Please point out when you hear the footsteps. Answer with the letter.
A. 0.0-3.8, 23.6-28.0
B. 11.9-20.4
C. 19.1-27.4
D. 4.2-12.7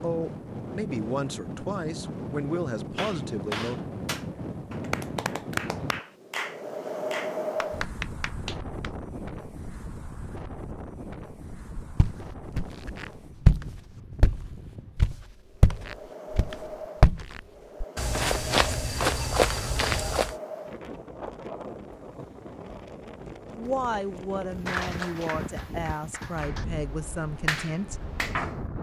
B.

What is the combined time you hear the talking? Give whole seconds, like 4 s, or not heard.
8 s.